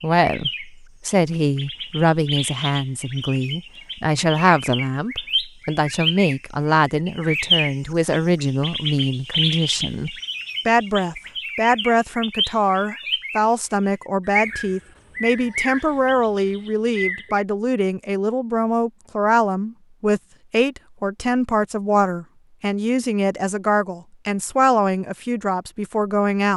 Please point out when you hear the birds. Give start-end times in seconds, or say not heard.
0.1-17.4.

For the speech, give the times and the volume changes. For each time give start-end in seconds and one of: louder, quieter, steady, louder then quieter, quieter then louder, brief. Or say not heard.
0.0-26.5 steady.